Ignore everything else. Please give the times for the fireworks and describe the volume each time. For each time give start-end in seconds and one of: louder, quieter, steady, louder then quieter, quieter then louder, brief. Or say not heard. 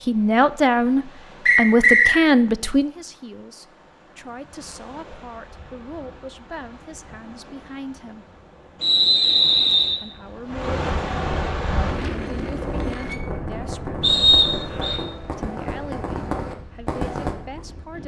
12.6-17.4 louder.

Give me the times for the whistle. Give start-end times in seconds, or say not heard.
1.4-2.1, 8.8-10.0, 14.0-15.0.